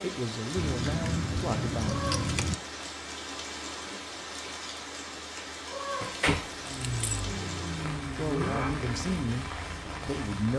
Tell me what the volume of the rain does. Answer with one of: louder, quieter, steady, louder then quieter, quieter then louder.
steady.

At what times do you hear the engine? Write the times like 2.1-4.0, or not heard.
6.6-10.2.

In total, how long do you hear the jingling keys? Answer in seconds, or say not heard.
3 s.